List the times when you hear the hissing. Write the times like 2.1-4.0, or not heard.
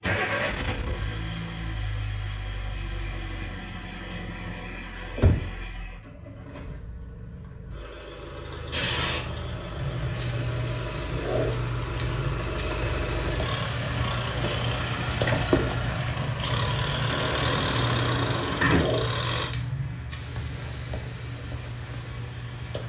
8.7-22.8.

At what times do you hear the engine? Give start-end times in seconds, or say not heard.
0.0-19.6.